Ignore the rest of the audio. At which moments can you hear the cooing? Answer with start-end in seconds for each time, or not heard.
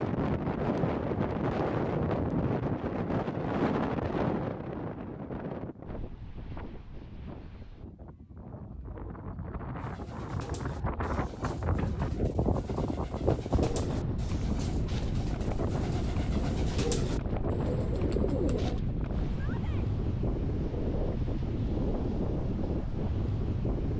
9.8-18.8.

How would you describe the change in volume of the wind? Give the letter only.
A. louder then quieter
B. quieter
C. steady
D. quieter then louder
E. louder
D.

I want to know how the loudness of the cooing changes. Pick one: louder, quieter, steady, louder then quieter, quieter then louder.
louder.